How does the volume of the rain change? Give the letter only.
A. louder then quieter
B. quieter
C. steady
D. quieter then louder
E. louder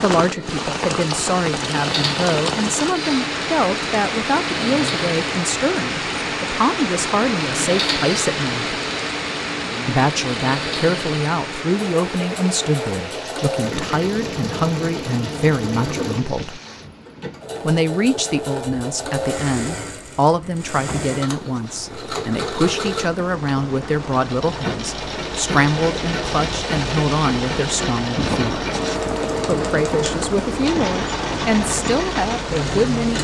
D.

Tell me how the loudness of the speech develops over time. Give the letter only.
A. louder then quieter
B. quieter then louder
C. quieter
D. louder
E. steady
E.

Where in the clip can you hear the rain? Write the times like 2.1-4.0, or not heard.
0.0-33.1.